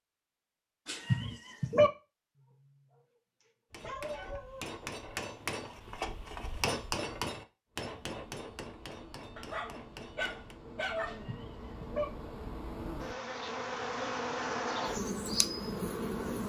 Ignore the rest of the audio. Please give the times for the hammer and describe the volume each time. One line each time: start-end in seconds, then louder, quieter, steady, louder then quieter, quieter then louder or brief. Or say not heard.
3.7-10.6 louder then quieter.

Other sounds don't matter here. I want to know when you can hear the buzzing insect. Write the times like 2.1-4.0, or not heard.
7.7-16.4.